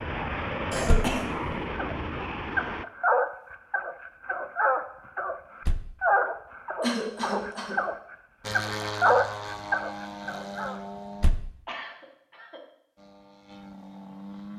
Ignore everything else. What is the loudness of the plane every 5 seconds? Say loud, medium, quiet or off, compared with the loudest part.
loud, loud, medium.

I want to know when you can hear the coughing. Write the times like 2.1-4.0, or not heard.
0.7-1.6, 6.8-7.8, 11.7-12.6.